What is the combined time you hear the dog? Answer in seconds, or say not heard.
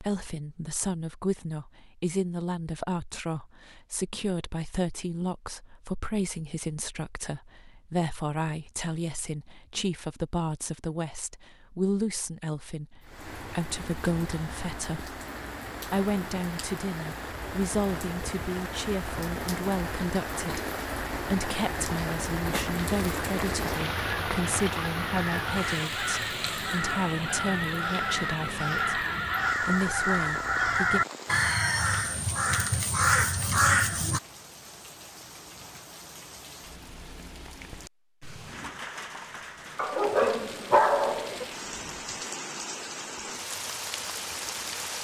2 s.